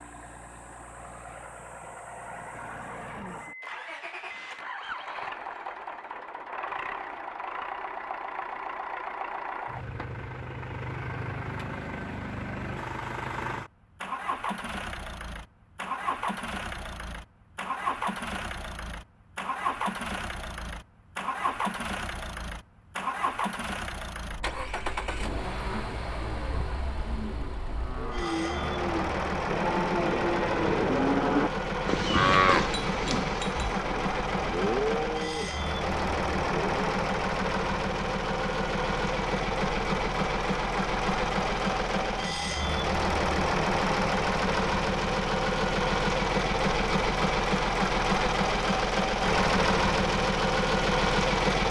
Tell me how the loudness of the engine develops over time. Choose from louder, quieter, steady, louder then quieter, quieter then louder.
louder.